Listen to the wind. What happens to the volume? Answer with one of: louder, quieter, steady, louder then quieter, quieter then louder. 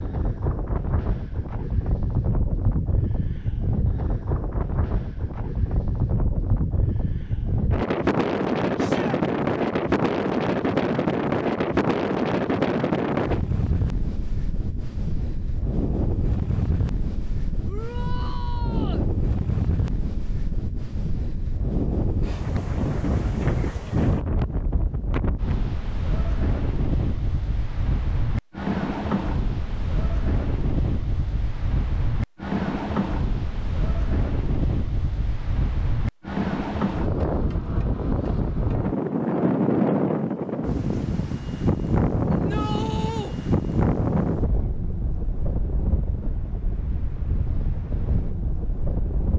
steady.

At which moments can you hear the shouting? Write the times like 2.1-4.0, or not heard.
8.8-9.2, 17.6-19.1, 42.3-43.4.